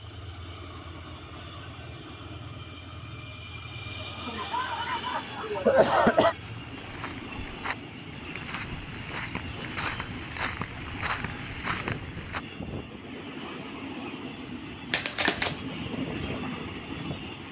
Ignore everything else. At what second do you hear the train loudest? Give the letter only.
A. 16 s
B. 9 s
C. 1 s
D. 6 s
A.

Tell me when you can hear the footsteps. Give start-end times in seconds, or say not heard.
6.4-12.4.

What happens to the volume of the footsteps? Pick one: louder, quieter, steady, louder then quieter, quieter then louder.
louder.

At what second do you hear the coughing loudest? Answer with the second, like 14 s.
6 s.